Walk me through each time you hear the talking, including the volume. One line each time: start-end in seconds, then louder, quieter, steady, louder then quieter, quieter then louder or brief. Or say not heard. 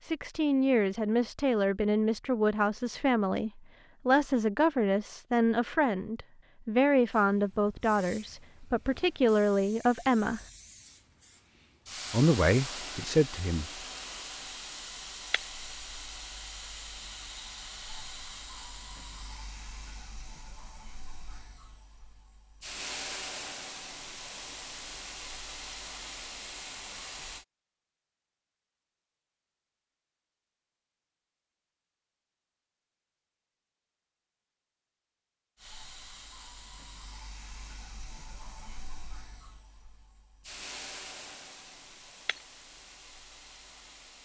0.0-10.4 steady
12.1-13.7 brief.